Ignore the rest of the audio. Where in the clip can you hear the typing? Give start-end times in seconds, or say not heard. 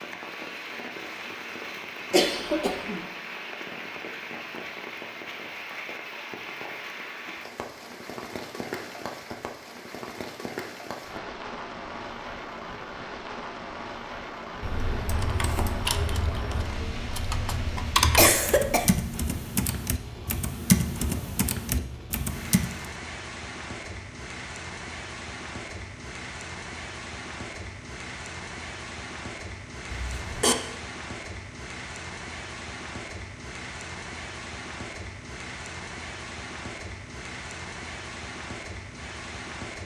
14.6-22.9.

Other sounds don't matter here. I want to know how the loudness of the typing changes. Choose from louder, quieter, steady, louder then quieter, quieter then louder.
louder then quieter.